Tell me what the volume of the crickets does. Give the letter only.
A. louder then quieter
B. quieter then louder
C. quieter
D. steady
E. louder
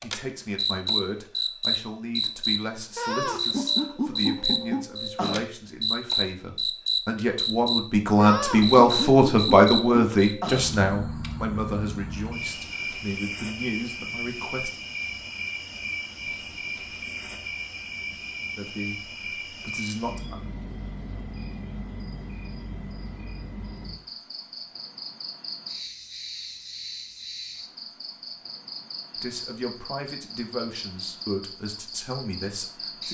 C.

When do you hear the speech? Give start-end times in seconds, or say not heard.
0.0-14.8, 18.6-20.4, 29.2-33.0.